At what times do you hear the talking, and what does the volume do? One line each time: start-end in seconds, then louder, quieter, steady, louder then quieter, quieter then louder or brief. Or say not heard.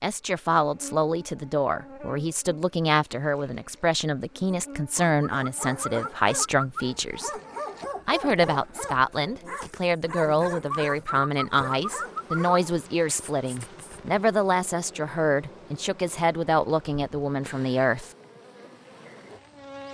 0.0-7.4 steady
8.1-18.1 steady.